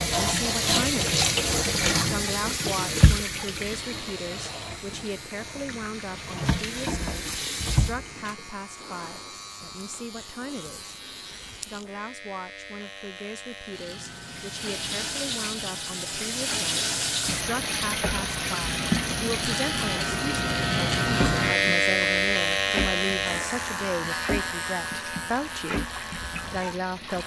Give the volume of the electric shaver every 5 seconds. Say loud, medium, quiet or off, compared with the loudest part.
quiet, quiet, quiet, medium, loud, quiet.